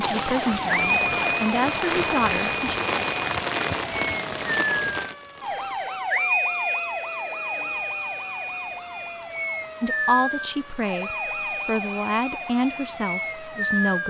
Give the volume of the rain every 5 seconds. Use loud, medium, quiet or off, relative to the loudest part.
loud, quiet, quiet.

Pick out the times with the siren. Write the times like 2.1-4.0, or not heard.
0.0-14.0.